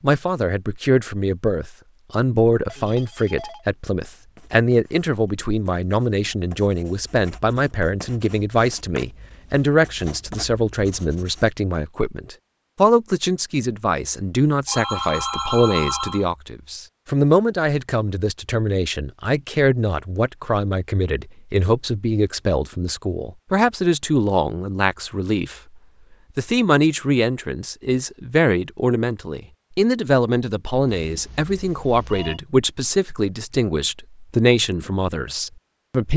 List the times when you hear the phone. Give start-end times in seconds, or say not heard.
2.6-3.6, 14.7-16.2, 31.0-32.4.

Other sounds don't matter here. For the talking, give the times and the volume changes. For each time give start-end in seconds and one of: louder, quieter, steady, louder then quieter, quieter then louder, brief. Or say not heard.
0.0-25.6 steady
26.4-36.1 steady.